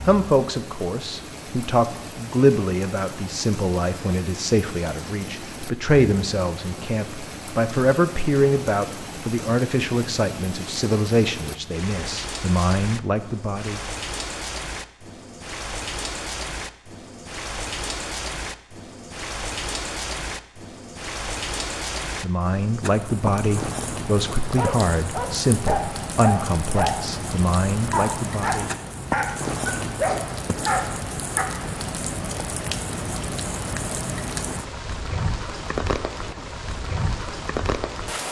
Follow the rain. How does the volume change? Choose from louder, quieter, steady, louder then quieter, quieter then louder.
louder.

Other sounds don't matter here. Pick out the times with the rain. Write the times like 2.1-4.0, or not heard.
0.0-38.2.